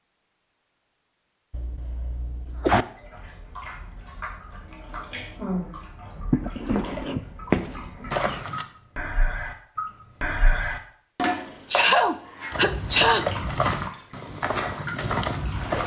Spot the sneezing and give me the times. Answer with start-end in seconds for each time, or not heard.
1.5-2.9, 6.3-8.2, 11.7-13.3.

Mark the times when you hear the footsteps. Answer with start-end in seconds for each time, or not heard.
6.5-8.7, 12.5-15.8.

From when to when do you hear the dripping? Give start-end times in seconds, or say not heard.
3.0-15.8.